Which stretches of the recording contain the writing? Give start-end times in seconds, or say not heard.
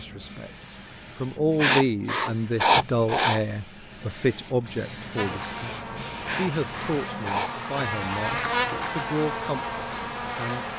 1.6-3.4, 6.2-7.8.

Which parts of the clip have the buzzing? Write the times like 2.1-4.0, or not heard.
5.2-10.7.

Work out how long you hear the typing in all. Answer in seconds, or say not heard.
not heard.